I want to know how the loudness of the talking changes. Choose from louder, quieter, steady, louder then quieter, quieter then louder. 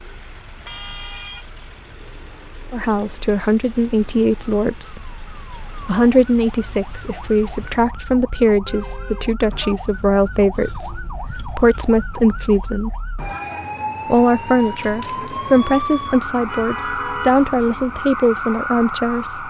steady.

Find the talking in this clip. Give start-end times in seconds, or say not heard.
2.7-12.9, 14.1-19.4.